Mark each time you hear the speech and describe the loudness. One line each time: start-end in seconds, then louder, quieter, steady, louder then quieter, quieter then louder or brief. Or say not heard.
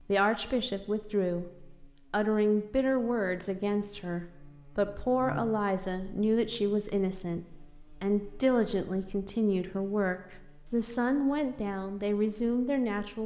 0.1-13.2 steady.